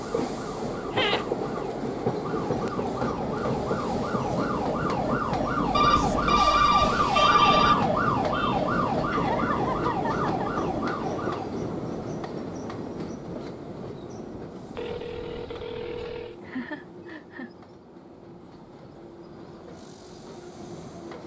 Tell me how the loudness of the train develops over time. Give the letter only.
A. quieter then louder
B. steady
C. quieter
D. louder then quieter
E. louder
C.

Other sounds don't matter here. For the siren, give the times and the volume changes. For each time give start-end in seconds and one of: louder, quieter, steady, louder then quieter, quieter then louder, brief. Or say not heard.
0.0-11.5 louder then quieter.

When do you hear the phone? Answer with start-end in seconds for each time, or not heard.
5.7-7.8, 14.8-16.4.